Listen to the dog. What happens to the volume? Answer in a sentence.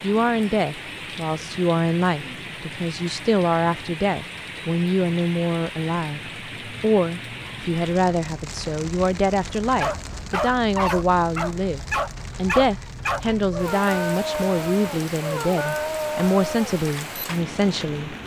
The volume of the dog stays about the same.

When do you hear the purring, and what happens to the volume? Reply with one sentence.
The purring can't be heard in this clip.